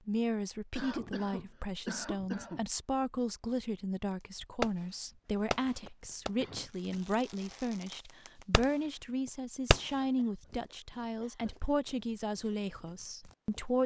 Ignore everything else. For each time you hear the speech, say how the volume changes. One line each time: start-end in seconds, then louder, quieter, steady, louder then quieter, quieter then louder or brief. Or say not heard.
0.1-13.8 steady.